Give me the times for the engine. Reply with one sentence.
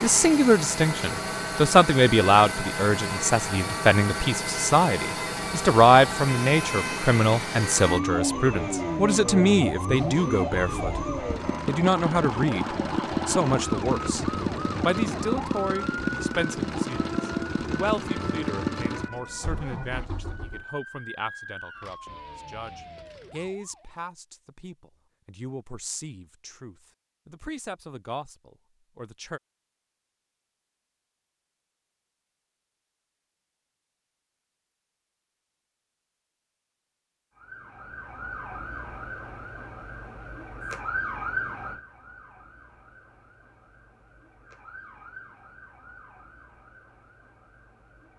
You can hear the engine from 0.0 to 20.6 s.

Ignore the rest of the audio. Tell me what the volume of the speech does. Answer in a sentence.
The volume of the speech goes down.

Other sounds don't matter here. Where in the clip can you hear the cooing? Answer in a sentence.
The cooing can't be heard in this clip.